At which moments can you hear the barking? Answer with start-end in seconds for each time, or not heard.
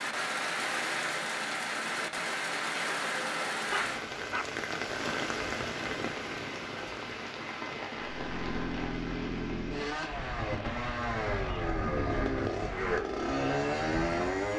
3.7-4.5.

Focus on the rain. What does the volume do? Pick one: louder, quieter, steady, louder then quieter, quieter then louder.
quieter.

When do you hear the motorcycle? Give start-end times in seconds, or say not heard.
8.0-14.5.